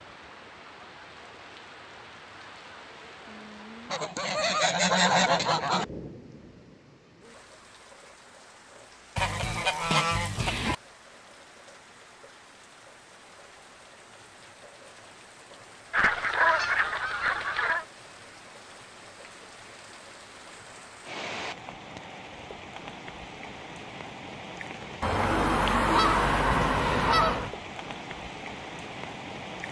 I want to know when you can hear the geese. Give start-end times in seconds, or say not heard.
3.9-5.8, 9.2-10.8, 15.9-17.9, 25.0-27.5.